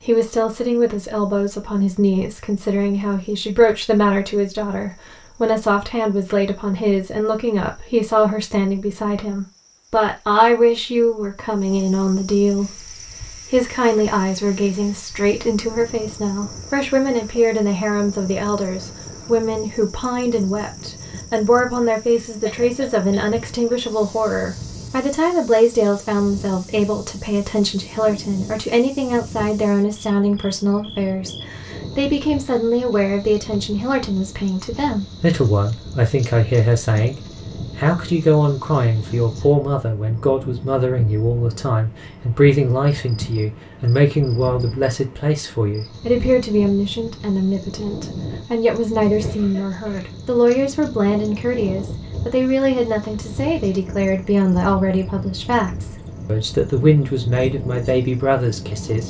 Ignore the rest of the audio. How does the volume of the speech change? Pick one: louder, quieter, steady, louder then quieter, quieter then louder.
steady.